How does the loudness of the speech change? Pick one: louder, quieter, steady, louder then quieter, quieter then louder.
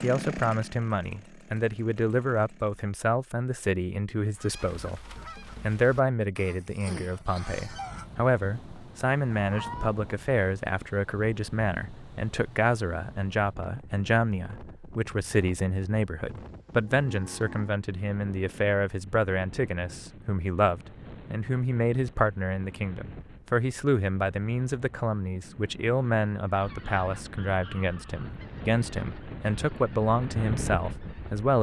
steady.